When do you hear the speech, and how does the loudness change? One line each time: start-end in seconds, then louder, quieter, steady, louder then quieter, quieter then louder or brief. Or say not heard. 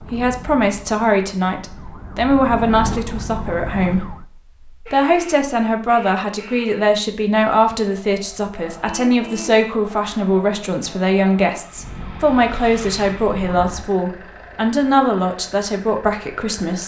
0.1-16.8 steady.